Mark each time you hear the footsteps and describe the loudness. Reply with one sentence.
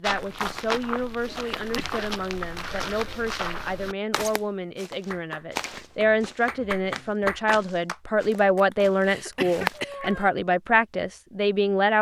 You can hear the footsteps from 0.0 to 9.8 s, getting quieter.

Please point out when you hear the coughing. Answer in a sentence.
The coughing can be heard from 1.6 to 2.1 s and from 9.1 to 10.2 s.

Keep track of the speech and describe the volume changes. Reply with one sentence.
The volume of the speech goes up.